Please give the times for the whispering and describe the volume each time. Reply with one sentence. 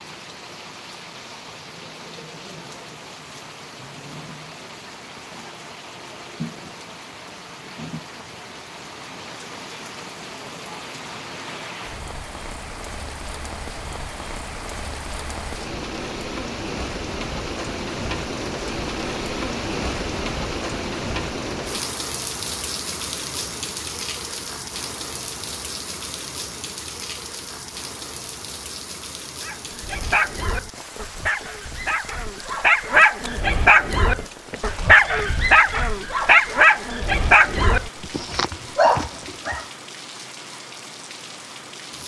The whispering can't be heard in this clip.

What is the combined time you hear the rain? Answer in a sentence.
You can hear the rain for 42 seconds altogether.